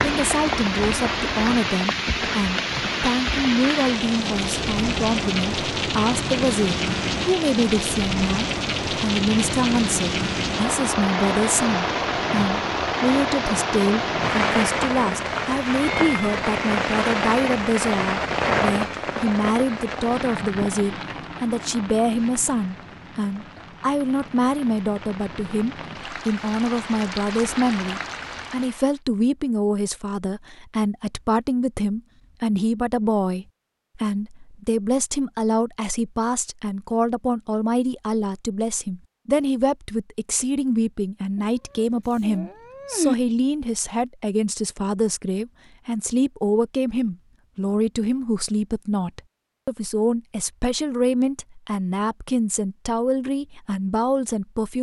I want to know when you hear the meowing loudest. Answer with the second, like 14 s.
43 s.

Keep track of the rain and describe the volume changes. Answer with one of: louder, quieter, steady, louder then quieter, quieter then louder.
quieter.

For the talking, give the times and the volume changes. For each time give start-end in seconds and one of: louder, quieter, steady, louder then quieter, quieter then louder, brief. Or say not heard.
0.0-54.7 steady.